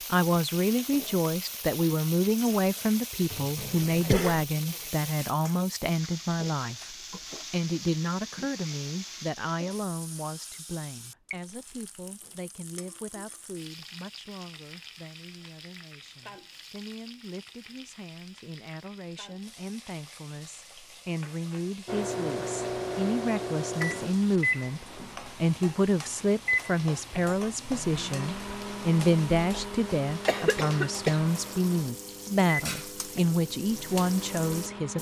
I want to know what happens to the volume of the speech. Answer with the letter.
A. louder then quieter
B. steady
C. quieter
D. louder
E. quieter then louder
E.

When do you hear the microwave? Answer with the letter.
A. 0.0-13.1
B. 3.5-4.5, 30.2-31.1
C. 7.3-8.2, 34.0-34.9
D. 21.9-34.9
D.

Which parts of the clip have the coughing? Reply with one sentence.
The coughing can be heard from 3.5 to 4.5 s and from 30.2 to 31.1 s.